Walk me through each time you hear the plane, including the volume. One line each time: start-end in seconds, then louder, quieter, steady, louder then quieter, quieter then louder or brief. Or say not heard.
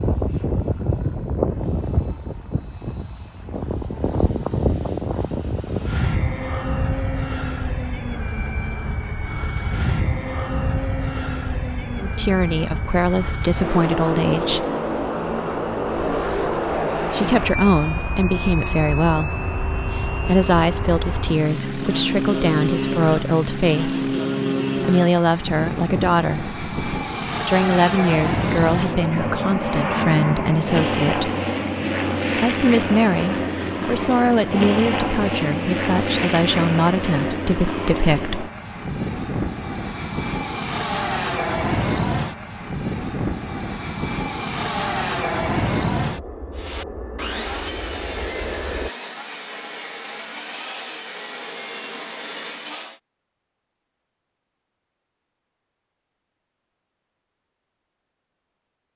0.0-48.9 steady.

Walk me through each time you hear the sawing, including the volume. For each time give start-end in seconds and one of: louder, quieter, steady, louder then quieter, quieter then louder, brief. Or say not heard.
46.5-53.0 steady.